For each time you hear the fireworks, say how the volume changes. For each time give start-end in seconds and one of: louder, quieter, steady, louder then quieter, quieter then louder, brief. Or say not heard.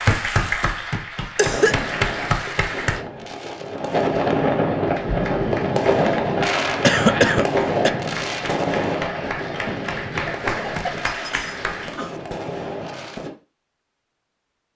1.4-13.3 louder then quieter.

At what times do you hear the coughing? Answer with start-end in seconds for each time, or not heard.
0.9-1.8, 6.8-7.9, 10.3-12.2.